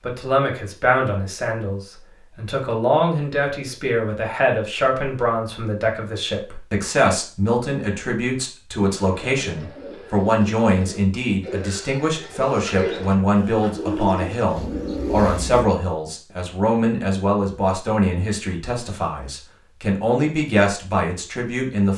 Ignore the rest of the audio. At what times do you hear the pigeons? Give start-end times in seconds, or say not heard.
8.8-15.7.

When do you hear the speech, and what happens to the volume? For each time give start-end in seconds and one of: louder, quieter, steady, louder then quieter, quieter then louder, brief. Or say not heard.
0.0-21.9 steady.